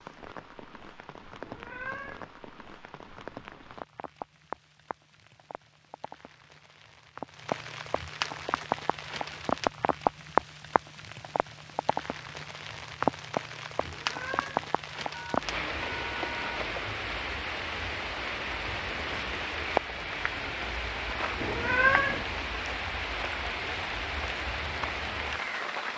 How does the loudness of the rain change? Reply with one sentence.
The loudness of the rain goes up.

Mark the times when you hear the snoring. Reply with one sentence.
The snoring can't be heard in this clip.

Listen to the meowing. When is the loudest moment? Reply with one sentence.
The volume of the meowing peaks at 22 seconds.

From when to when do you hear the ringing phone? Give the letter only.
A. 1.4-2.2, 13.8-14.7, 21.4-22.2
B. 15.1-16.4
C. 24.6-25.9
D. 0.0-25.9
B.